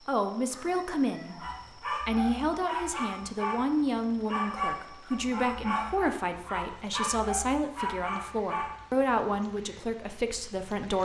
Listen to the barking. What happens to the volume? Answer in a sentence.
The volume of the barking stays about the same.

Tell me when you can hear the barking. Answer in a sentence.
You can hear the barking from 1.4 to 9.1 s.